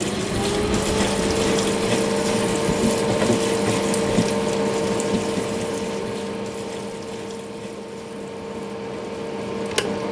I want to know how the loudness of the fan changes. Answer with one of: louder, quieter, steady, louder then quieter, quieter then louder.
quieter.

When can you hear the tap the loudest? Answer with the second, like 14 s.
3 s.